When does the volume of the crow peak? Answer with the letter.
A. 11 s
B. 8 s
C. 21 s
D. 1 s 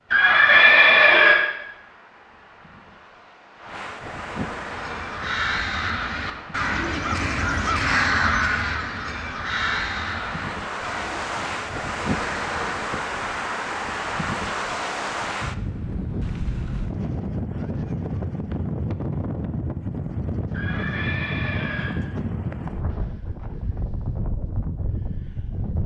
B.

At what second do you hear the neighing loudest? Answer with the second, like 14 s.
1 s.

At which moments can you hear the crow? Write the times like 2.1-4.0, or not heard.
4.6-12.8.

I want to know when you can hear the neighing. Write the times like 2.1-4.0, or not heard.
0.1-1.4, 20.5-21.9.